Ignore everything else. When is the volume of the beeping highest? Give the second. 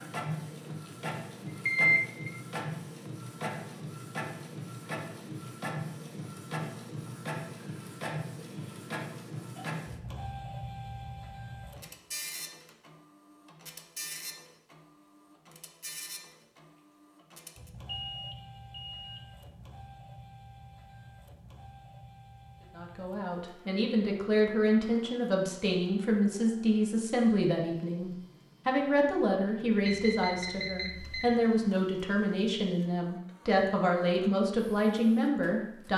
2 s.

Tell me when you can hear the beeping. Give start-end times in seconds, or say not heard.
1.6-2.4, 17.9-19.2, 29.9-31.4.